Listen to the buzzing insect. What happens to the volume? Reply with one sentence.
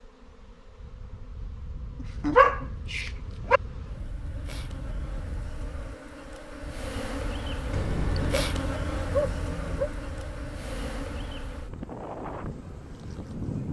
The volume of the buzzing insect goes up, then down.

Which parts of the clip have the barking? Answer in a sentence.
You can hear the barking from 2.2 to 3.6 s and from 7.7 to 9.9 s.